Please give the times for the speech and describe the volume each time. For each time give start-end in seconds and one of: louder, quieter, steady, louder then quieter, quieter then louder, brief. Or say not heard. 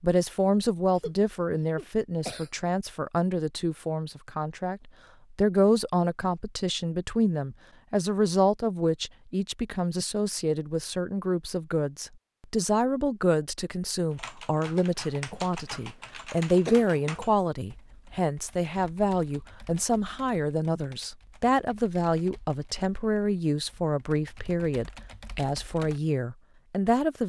0.0-27.2 steady.